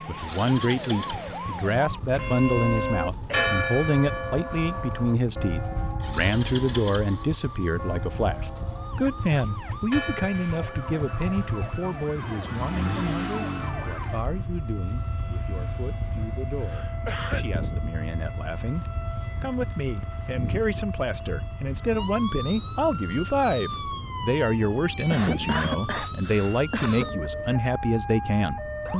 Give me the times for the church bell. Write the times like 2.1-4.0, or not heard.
2.1-14.2.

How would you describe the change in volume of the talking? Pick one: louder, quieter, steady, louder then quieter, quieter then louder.
quieter then louder.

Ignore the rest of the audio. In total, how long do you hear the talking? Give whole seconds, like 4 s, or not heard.
29 s.